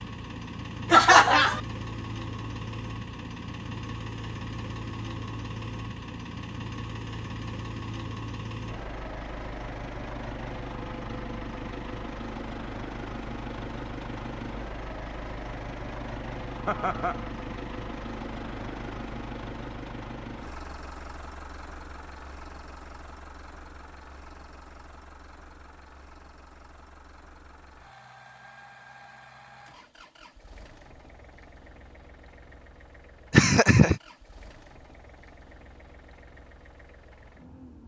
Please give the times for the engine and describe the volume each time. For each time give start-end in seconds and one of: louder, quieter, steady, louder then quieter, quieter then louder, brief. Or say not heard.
0.0-37.8 quieter.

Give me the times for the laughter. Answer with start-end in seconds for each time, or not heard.
0.9-1.6, 16.6-17.3, 33.3-34.0.